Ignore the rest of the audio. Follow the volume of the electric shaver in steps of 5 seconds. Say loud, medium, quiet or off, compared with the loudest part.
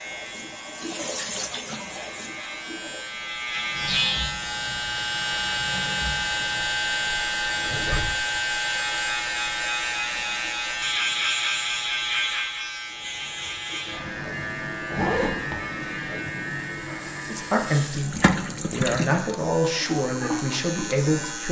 medium, loud, loud, medium, medium.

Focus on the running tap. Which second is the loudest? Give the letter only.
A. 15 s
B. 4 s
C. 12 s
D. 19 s
D.